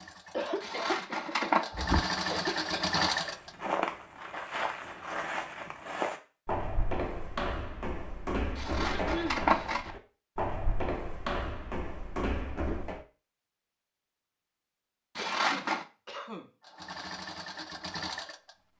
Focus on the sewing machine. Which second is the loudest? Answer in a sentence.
The volume of the sewing machine peaks at 3 seconds.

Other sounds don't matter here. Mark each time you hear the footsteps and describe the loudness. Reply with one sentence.
The footsteps can be heard from 1.8 to 13.0 s, at a steady volume.